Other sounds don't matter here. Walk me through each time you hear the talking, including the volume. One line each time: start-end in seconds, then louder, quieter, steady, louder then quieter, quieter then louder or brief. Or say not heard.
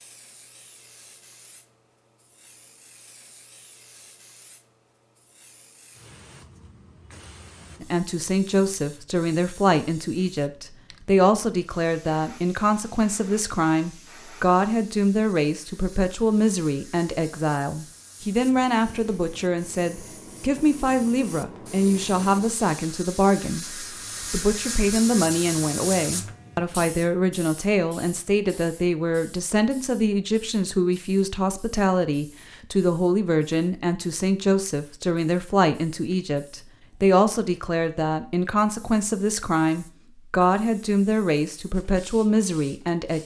7.8-43.2 steady.